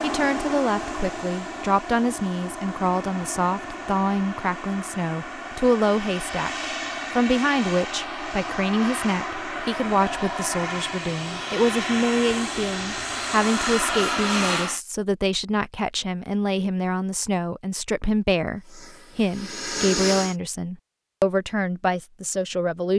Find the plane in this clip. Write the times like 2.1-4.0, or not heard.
0.0-14.8, 18.6-20.4.